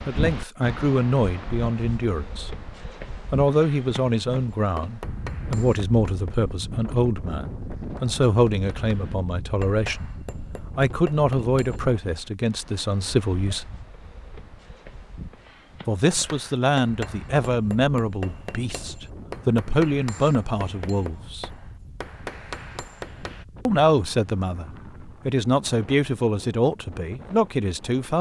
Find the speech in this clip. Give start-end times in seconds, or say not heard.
0.1-2.5, 3.3-13.7, 15.8-21.5, 23.6-28.1.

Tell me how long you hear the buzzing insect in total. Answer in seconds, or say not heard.
not heard.